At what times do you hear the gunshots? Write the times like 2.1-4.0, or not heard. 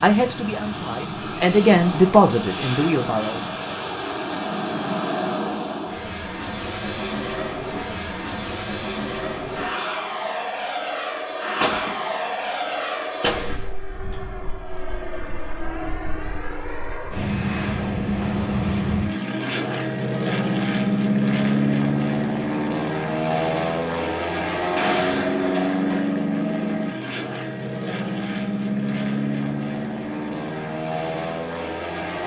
11.6-12.6, 13.2-14.2, 24.6-26.1.